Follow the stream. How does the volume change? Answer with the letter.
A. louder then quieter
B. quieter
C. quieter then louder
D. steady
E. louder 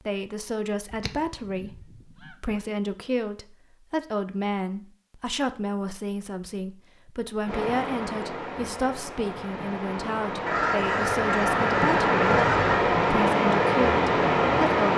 E.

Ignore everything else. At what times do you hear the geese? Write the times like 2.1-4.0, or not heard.
0.9-2.5, 10.4-12.8.